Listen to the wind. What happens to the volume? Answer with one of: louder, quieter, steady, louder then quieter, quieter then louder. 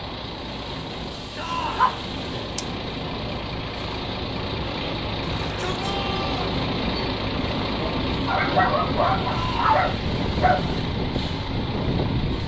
louder.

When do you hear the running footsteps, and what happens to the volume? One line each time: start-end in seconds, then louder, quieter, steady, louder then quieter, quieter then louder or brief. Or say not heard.
not heard.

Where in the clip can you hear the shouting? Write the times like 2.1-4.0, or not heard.
1.4-1.9, 5.2-6.5, 9.2-9.7.